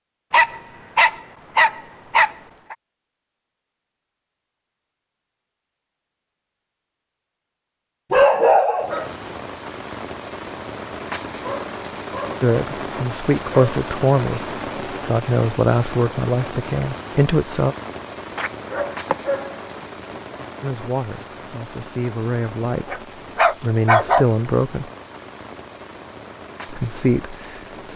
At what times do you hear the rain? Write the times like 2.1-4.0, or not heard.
8.8-27.9.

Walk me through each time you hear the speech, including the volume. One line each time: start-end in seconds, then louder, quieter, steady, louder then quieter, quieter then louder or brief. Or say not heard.
12.4-17.8 steady
20.6-23.0 brief
23.6-24.9 brief
26.6-27.9 brief.